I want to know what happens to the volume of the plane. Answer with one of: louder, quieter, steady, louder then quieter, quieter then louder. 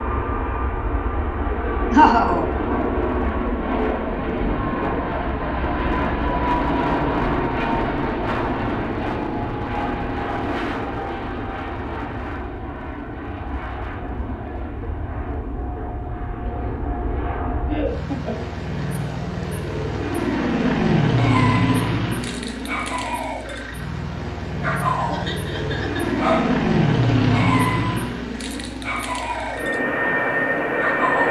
quieter then louder.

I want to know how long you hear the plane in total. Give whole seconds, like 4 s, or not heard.
31 s.